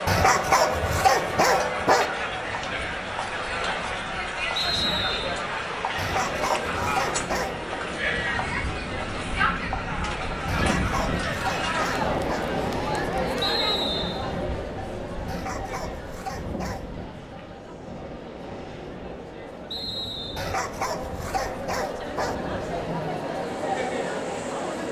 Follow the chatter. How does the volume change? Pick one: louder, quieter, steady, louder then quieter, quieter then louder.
quieter then louder.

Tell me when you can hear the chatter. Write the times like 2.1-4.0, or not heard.
0.0-24.8.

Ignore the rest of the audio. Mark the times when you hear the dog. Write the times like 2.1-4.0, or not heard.
0.1-2.1, 6.0-7.7, 10.4-12.4, 15.2-16.9, 20.4-22.4.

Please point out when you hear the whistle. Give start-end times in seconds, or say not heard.
4.5-5.4, 13.4-14.2, 19.7-20.6.